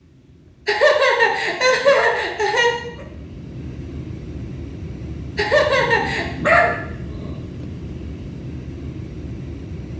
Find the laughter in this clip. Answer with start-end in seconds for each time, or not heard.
0.7-2.7, 5.3-6.2.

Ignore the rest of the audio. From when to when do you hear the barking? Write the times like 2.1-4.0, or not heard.
1.2-3.0, 5.8-7.3.